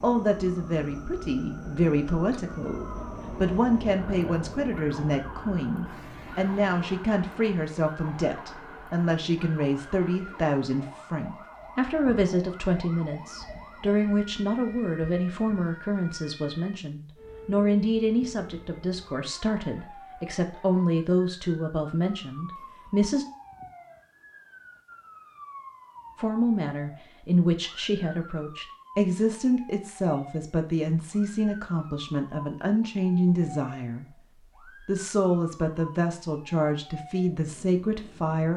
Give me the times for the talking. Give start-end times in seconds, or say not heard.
0.0-23.2, 26.1-34.0, 34.9-38.5.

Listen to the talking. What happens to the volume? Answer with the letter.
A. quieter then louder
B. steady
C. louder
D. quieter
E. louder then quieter
B.